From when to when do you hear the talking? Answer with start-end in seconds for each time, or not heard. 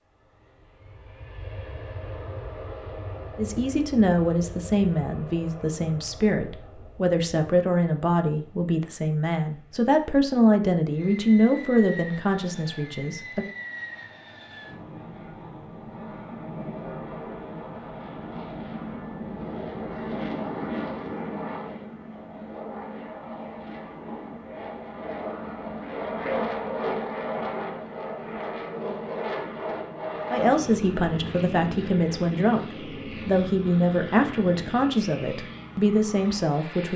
3.4-13.4, 30.3-36.9.